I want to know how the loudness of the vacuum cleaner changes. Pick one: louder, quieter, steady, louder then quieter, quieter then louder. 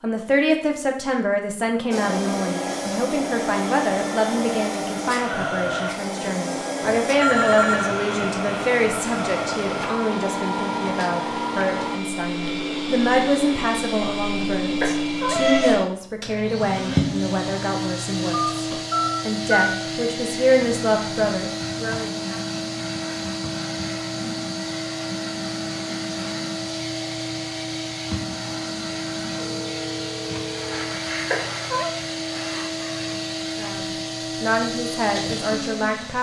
steady.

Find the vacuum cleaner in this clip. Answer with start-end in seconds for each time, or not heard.
1.9-36.1.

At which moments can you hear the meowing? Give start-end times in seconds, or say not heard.
14.8-15.8, 31.3-31.9.